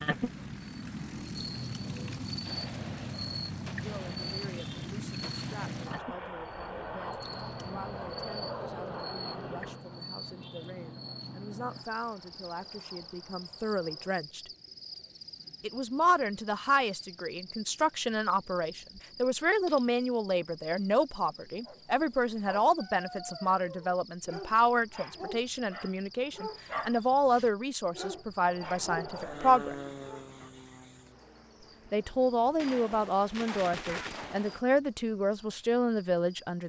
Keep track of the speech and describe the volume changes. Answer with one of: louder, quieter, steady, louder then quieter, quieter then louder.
louder.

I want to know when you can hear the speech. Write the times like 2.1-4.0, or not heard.
3.8-14.5, 15.6-29.8, 31.9-36.6.